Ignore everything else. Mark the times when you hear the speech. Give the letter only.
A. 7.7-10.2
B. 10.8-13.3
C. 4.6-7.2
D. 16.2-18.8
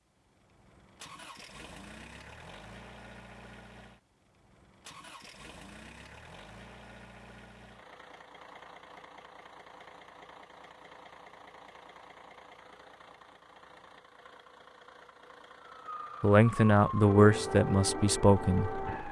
D.